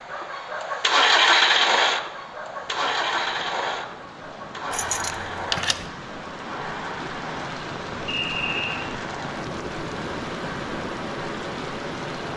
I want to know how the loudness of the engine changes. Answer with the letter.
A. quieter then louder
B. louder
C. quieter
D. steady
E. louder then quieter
C.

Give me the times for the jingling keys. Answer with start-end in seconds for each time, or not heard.
4.7-5.9.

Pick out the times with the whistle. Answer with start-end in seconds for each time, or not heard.
8.1-8.8.